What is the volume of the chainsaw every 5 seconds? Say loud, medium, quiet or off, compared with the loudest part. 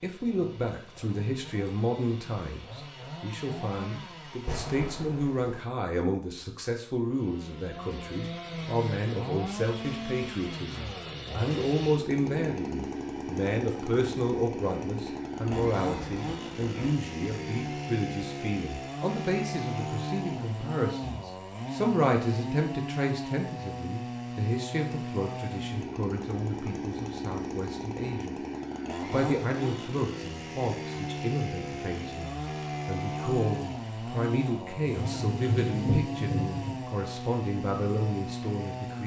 medium, loud, loud, loud, loud, loud, loud, loud.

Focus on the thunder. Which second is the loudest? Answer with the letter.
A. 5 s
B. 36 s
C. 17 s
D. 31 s
B.